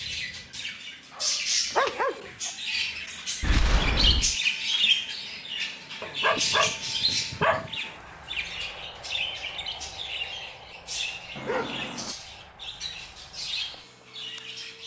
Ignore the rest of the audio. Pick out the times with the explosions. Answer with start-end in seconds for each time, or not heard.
3.4-4.3.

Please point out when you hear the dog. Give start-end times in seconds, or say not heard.
1.1-2.5, 6.0-7.8, 11.3-12.2.